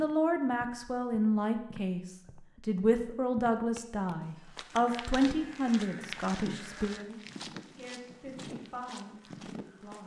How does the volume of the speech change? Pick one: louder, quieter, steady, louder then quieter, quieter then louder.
quieter.